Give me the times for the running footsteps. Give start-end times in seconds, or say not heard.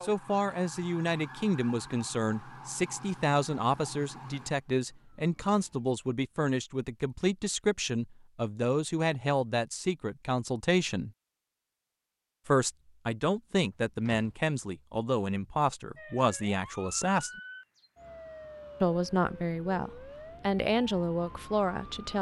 not heard.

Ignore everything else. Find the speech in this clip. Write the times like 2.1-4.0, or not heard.
0.0-11.1, 12.4-17.3, 18.8-22.1.